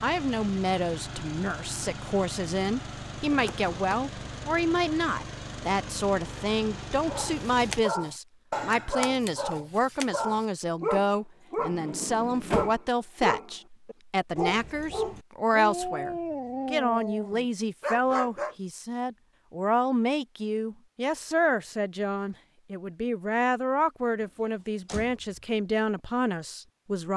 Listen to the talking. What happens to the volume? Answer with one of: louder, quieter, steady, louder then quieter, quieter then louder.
steady.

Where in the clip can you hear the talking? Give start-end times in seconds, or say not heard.
0.0-27.1.